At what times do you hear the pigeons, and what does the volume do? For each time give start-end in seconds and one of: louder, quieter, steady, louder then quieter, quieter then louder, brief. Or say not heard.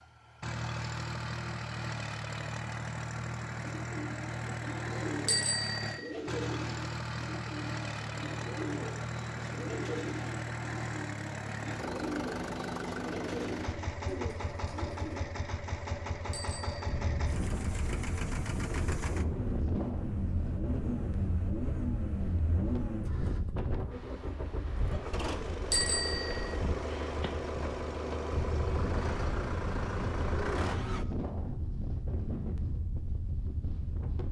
3.6-15.2 steady.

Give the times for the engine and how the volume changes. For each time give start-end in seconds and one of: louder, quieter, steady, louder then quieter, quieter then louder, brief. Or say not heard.
0.0-31.1 steady.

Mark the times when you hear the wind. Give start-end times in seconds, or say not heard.
16.8-34.2.